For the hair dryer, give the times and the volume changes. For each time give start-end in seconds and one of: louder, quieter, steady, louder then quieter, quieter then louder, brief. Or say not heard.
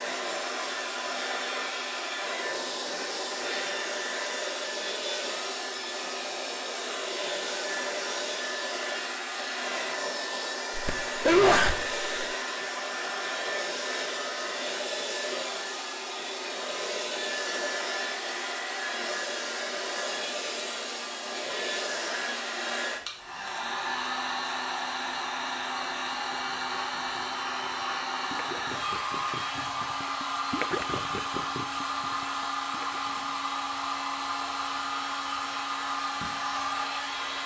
0.0-37.4 steady.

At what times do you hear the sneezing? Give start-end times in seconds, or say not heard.
10.8-12.1.